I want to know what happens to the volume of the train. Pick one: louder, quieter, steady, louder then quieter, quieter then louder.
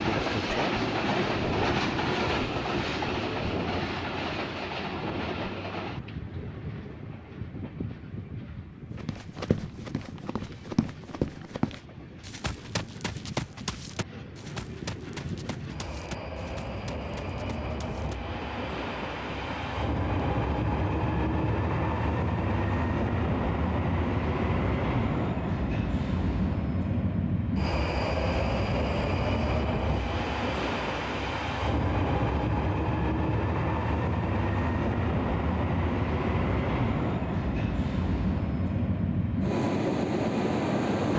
quieter then louder.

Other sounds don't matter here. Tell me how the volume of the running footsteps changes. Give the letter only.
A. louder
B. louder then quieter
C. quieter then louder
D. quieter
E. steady
D.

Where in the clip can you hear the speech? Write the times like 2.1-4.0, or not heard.
not heard.